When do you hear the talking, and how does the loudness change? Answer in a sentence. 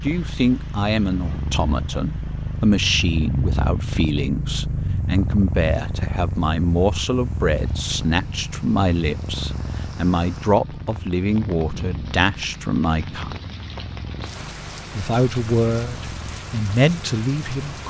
The talking can be heard from 0.0 to 13.3 s, at a steady volume; and briefly from 14.9 to 17.8 s.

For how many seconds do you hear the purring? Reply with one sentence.
The purring can be heard for 18 seconds in total.